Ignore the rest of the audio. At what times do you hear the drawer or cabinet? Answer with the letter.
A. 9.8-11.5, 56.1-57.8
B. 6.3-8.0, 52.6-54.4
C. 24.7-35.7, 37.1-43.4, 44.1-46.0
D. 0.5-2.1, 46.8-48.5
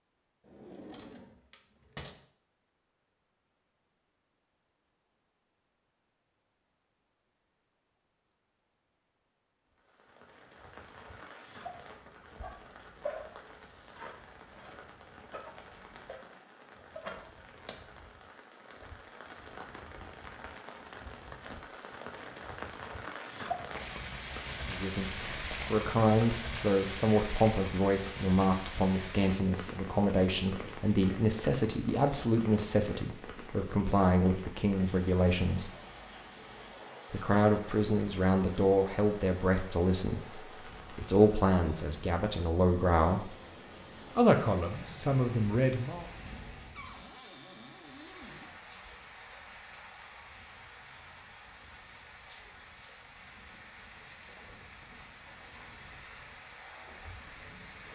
D.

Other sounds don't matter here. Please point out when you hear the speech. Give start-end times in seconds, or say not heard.
24.7-35.7, 37.1-43.4, 44.1-46.0.